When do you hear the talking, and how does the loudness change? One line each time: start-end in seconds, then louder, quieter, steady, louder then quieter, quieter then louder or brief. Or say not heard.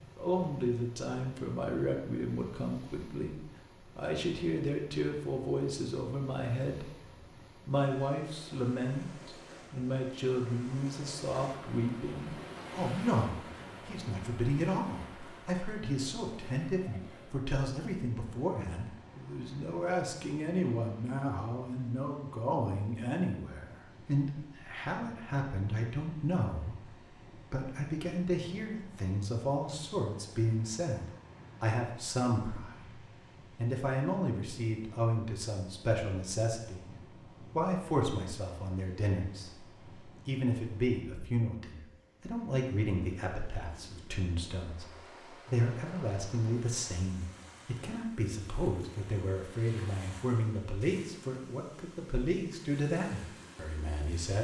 0.0-6.8 quieter then louder
7.7-54.4 steady.